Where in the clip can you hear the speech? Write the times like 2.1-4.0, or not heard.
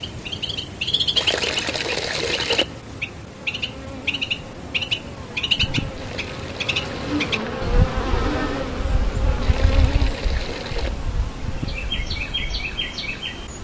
not heard.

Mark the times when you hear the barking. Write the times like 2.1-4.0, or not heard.
not heard.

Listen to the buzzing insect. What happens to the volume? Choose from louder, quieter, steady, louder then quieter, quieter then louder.
louder then quieter.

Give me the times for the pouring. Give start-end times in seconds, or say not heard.
1.1-2.6, 6.0-7.5, 9.4-10.9.